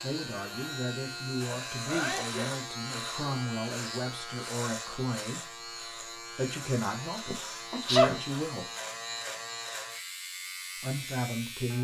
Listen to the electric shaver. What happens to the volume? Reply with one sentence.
The loudness of the electric shaver stays about the same.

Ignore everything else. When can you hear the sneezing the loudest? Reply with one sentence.
The loudest moment of the sneezing is at 8 seconds.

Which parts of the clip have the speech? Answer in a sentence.
The speech can be heard from 0.0 to 8.7 s and from 10.8 to 11.7 s.